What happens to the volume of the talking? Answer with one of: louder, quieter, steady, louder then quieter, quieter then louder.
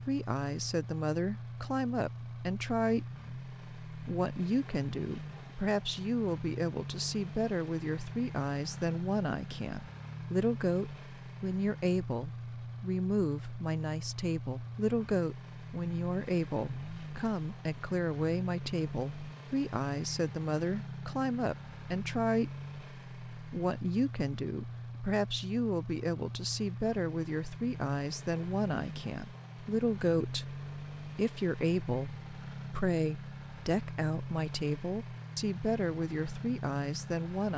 steady.